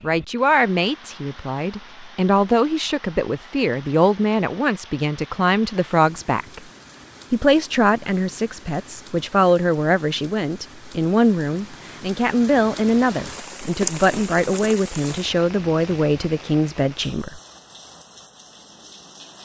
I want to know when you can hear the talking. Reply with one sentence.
The talking can be heard from 0.0 to 6.6 s and from 7.3 to 17.4 s.